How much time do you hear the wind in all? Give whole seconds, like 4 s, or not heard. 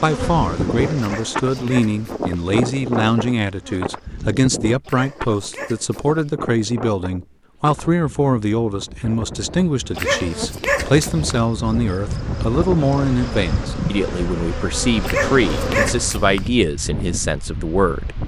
18 s.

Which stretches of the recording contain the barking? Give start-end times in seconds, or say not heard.
0.9-2.3, 4.8-6.3, 9.9-11.4, 15.0-16.5.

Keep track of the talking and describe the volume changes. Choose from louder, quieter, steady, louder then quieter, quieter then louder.
steady.